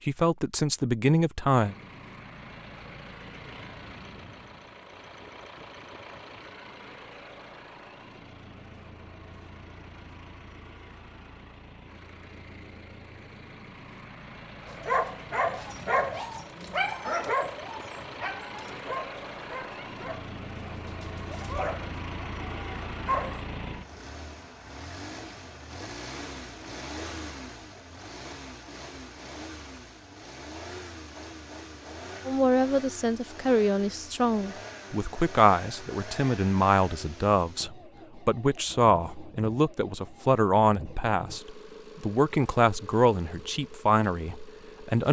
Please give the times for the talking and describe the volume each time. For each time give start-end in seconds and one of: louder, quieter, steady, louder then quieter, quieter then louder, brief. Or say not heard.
0.1-1.8 brief
32.2-45.0 steady.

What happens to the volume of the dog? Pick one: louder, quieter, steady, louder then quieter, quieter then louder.
quieter then louder.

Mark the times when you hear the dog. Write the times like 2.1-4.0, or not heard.
14.7-23.4.